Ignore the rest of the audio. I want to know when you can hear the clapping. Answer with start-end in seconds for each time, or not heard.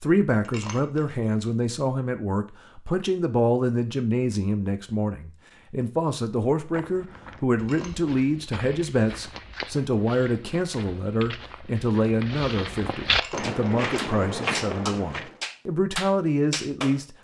13.4-17.0.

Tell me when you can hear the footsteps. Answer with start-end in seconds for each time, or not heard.
6.5-15.3.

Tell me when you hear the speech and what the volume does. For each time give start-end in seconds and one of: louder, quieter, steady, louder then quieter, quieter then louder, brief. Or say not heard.
0.0-17.1 steady.